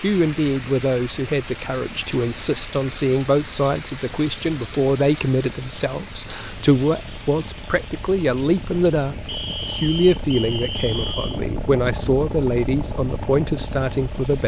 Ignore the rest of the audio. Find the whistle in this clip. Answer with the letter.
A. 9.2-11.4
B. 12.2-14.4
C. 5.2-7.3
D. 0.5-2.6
A.